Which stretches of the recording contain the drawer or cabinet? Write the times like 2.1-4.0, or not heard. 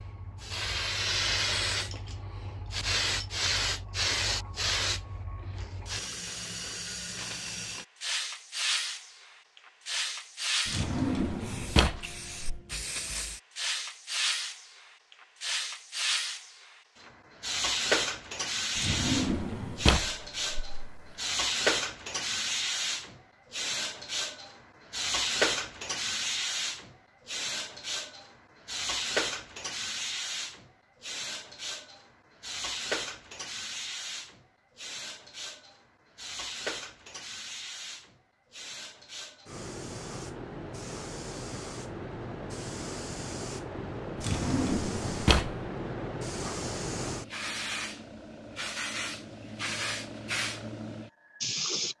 10.7-12.6, 18.8-21.1, 44.1-45.5.